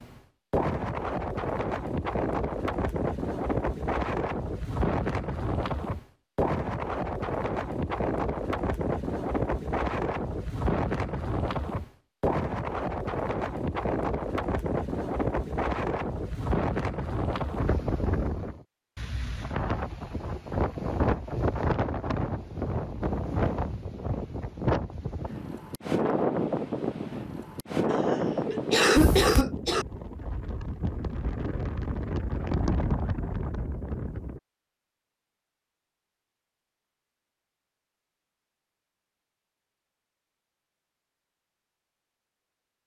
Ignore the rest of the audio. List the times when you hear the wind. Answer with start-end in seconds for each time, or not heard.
0.0-34.4.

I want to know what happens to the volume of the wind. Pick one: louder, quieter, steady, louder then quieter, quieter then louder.
steady.